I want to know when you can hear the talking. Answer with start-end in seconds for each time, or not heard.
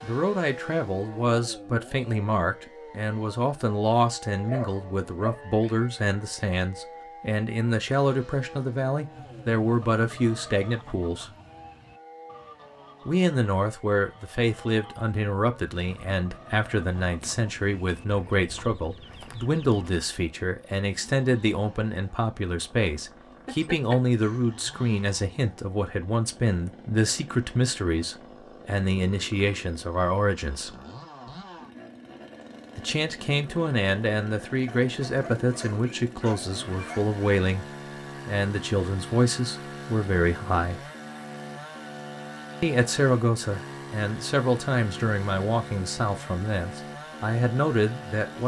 0.0-11.3, 13.1-30.8, 32.8-37.6, 38.2-40.8, 42.6-48.4.